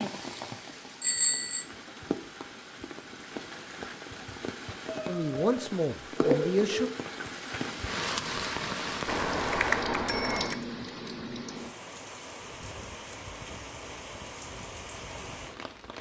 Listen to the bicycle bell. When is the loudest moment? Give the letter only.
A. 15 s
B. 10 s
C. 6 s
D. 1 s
D.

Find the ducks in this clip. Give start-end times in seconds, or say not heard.
not heard.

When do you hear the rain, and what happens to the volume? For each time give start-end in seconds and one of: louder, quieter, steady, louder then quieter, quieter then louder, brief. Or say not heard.
0.0-15.9 louder then quieter.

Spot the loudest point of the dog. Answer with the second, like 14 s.
6 s.